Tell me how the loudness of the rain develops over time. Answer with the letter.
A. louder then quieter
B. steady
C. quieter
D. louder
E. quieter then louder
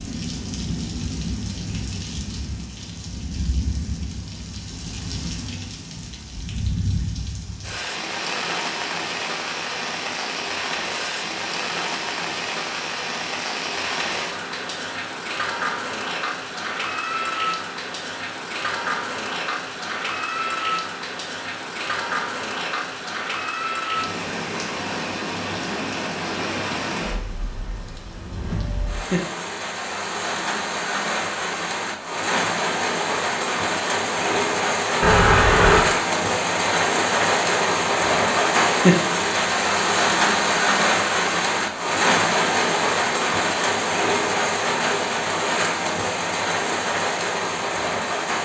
D.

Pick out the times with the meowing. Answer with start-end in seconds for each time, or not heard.
35.0-35.9.